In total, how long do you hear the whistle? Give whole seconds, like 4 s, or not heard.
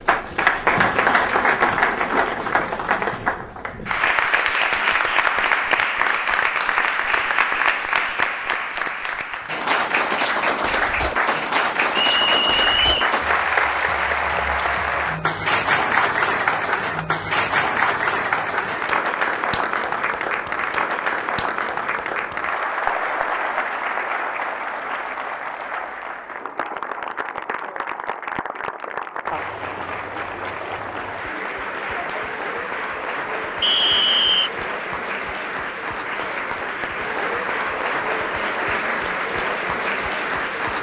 2 s.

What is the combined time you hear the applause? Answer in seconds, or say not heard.
41 s.